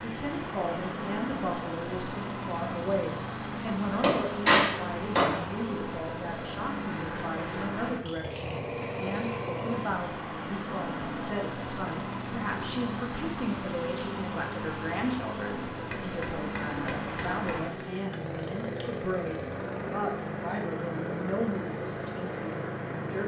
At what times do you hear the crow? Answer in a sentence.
You can't hear the crow here.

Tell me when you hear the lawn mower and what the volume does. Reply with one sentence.
The lawn mower can be heard from 0.0 to 23.2 s, at a steady volume.